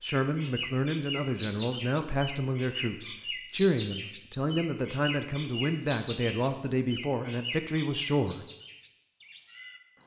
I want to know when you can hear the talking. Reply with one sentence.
The talking can be heard from 0.0 to 8.4 s.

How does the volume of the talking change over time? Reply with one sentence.
The loudness of the talking stays about the same.